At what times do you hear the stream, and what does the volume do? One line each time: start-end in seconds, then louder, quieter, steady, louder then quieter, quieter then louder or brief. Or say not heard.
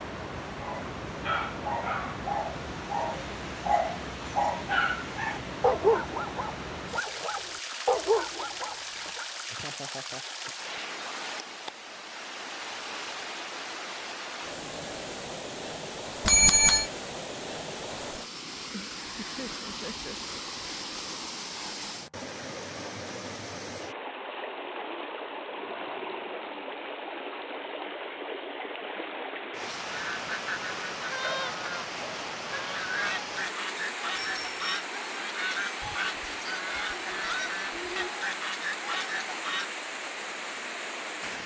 0.0-41.4 steady.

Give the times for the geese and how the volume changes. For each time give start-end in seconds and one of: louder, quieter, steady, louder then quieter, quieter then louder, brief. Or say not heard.
29.9-39.7 steady.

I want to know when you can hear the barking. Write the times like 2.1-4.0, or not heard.
0.6-9.2.